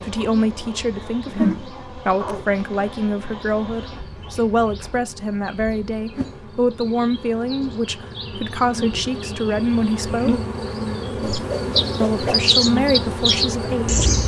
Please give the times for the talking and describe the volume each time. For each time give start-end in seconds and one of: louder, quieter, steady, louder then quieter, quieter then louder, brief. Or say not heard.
0.0-10.4 steady
12.0-14.1 brief.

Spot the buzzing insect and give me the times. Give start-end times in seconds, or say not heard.
0.0-14.2.